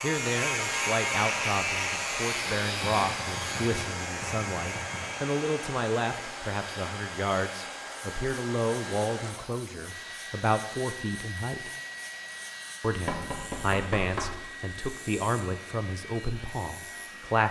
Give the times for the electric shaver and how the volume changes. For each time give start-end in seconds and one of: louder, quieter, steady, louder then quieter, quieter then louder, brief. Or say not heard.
0.0-17.4 quieter.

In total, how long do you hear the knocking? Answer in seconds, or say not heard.
4 s.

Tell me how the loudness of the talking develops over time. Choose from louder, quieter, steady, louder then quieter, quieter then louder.
steady.